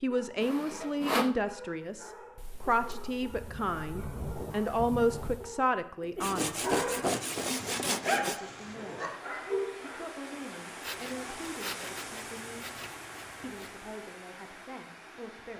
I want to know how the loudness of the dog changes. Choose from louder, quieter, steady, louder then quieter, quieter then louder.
louder.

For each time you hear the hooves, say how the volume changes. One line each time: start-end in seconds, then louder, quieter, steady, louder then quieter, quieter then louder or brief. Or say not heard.
not heard.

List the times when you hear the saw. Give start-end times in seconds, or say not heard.
0.4-1.4, 6.2-8.4, 10.8-13.7.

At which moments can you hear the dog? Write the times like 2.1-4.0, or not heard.
0.1-10.1.